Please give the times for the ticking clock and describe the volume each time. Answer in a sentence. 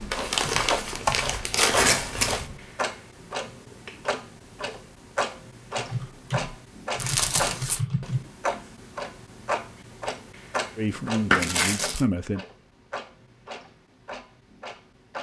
You can hear the ticking clock from 0.0 to 15.1 s, getting quieter.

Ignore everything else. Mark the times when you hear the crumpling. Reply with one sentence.
The crumpling can be heard from 0.1 to 2.5 s, from 7.0 to 7.8 s and from 11.3 to 12.0 s.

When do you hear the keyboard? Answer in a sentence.
You can hear the keyboard from 0.0 to 2.6 s and from 5.8 to 8.3 s.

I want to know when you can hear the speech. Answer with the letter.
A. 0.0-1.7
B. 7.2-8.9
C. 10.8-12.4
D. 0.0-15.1
C.